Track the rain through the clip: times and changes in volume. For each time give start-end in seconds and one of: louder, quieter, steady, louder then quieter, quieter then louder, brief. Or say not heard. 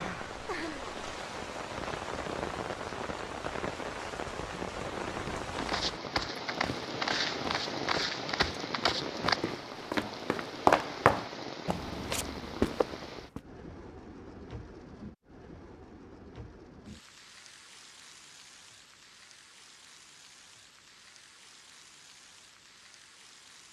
0.0-23.6 quieter.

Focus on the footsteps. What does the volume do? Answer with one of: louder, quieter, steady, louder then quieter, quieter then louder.
louder then quieter.